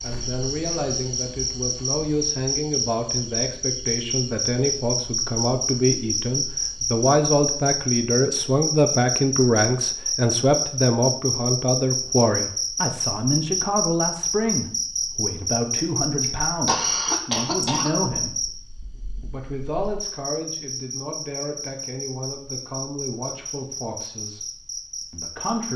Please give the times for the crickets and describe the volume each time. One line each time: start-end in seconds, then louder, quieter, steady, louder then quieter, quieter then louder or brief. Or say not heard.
0.0-25.7 quieter.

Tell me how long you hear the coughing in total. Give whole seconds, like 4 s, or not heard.
2 s.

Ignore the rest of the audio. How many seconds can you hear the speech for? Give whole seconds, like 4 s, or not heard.
24 s.